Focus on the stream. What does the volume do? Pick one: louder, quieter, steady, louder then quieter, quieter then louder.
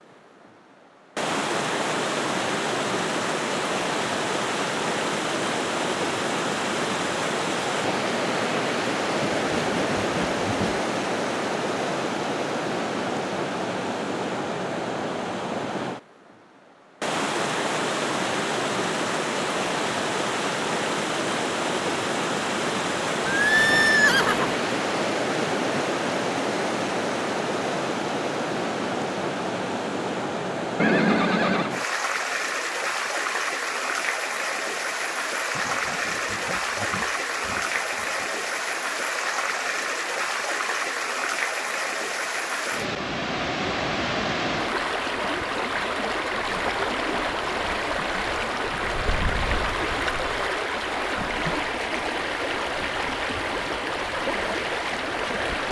steady.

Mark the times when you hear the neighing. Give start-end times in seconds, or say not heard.
23.2-24.6, 30.8-31.8.